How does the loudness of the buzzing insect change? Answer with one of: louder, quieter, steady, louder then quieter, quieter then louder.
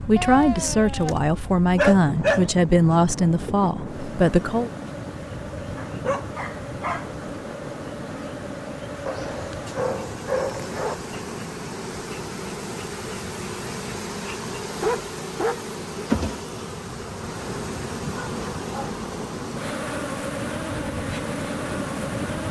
louder.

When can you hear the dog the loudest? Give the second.
2 s.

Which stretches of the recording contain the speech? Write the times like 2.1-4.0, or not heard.
0.1-4.7.